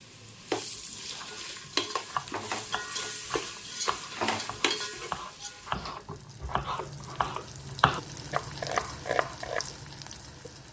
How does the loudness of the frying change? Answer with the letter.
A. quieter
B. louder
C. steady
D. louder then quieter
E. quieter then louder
A.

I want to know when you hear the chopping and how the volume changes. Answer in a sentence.
You can hear the chopping from 1.2 to 9.7 s, getting quieter then louder.